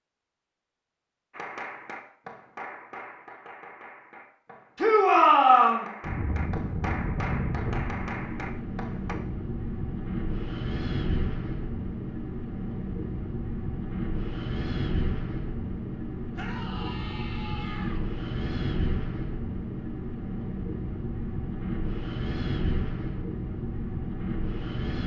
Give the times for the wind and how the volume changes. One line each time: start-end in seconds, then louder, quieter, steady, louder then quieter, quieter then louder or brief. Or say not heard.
6.0-25.0 steady.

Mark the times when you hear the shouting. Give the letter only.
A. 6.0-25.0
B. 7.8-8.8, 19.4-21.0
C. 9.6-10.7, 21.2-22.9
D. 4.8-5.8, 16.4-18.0
D.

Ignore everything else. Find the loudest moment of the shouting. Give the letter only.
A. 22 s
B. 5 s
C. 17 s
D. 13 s
B.